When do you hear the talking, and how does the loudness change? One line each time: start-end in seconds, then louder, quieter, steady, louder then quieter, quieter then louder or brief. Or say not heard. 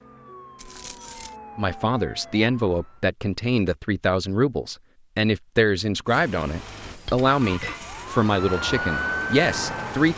1.6-10.1 steady.